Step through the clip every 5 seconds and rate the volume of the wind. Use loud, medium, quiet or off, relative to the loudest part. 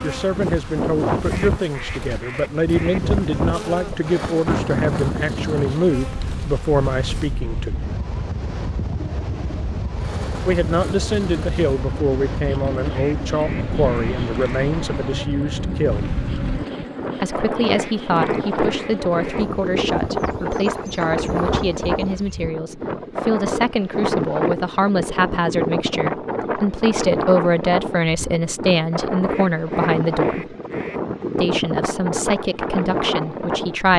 loud, medium, medium, loud, loud, loud, loud.